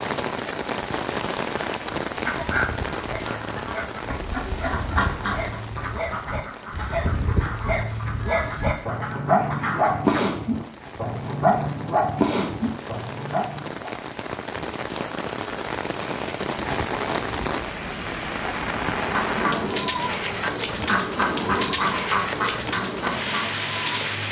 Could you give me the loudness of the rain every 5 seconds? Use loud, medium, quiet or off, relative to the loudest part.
loud, quiet, medium, loud, loud.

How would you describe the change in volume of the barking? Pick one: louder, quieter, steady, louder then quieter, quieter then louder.
louder.